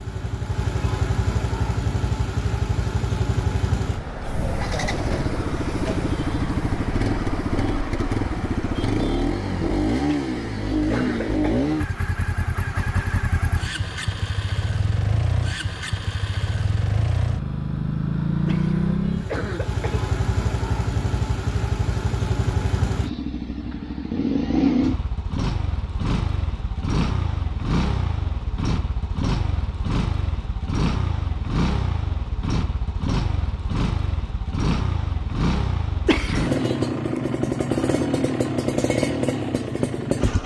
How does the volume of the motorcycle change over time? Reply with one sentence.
The volume of the motorcycle stays about the same.